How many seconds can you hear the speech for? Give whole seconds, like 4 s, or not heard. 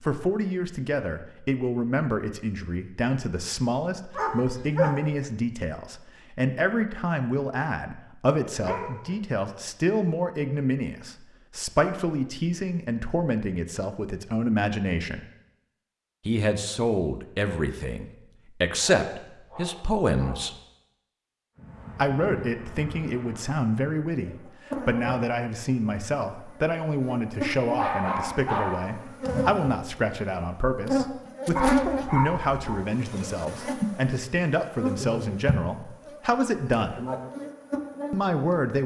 35 s.